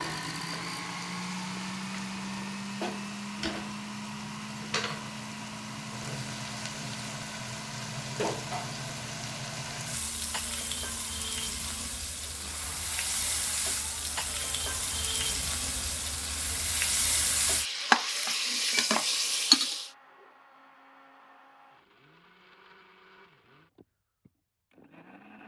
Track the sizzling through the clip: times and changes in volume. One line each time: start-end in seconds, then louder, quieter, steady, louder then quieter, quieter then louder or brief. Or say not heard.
0.0-19.9 louder.